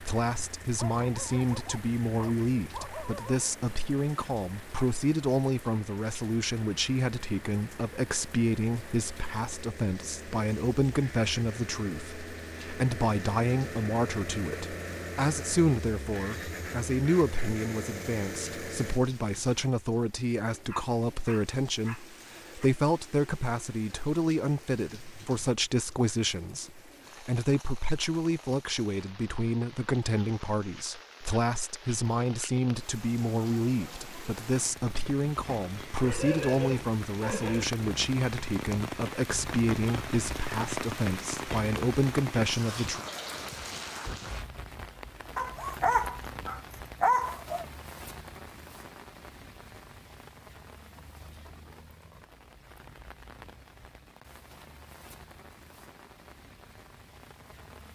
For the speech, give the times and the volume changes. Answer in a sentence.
The speech can be heard from 0.0 to 43.0 s, at a steady volume.